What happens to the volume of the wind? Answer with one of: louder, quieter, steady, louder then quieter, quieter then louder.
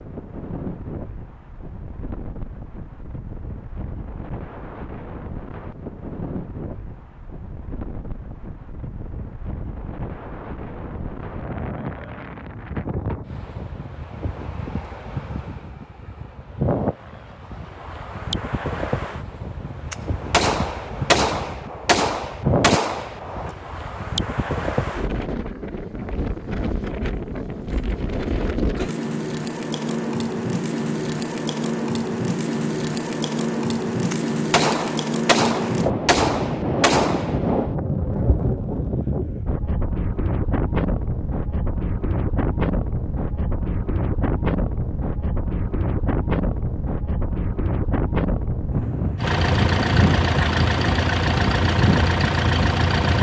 louder.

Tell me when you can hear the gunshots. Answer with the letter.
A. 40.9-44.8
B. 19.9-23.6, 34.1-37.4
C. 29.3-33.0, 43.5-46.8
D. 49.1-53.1
B.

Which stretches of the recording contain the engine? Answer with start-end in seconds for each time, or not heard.
49.1-53.1.